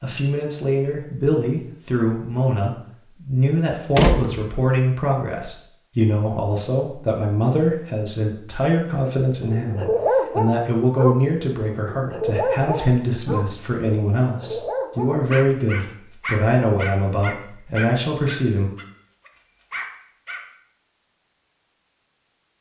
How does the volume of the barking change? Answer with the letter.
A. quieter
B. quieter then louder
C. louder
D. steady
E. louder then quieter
A.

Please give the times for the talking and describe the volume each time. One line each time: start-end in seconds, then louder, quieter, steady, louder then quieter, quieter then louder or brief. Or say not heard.
0.0-18.7 steady.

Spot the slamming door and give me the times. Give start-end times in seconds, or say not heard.
4.0-4.5.